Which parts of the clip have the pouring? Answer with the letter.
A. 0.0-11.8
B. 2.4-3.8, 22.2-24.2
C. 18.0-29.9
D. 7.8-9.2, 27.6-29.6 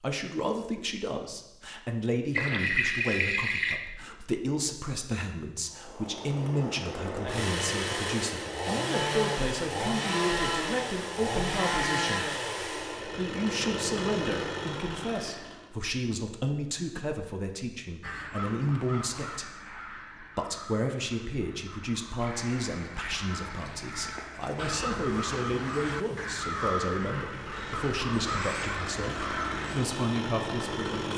B.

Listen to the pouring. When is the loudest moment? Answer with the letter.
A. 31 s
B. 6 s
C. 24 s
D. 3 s
D.